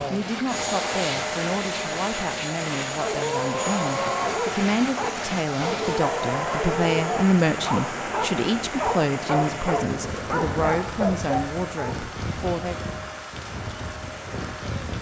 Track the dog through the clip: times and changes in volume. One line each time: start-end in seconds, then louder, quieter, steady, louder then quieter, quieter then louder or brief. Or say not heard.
3.0-11.9 steady.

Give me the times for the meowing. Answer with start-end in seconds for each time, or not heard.
not heard.